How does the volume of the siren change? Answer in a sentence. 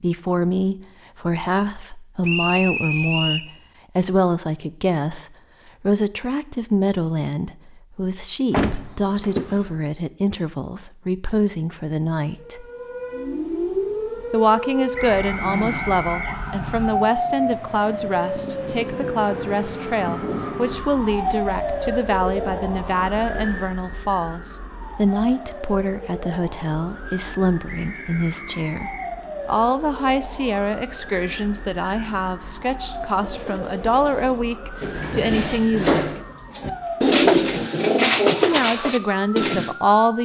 The volume of the siren goes down.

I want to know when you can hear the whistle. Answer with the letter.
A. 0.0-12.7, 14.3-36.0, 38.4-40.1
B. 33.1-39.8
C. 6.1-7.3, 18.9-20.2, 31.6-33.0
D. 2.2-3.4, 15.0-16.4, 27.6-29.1
D.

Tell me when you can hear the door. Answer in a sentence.
The door can be heard from 8.5 to 9.7 s and from 34.8 to 36.2 s.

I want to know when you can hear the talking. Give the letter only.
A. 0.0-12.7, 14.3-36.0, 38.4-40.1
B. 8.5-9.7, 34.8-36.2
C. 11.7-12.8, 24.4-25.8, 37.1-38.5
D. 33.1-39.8
A.